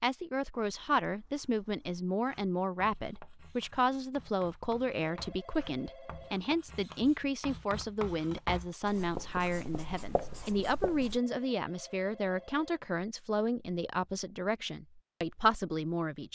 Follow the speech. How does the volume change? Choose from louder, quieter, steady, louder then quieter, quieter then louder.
steady.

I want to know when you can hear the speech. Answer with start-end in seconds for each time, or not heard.
0.0-16.2.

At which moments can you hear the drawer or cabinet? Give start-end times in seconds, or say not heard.
not heard.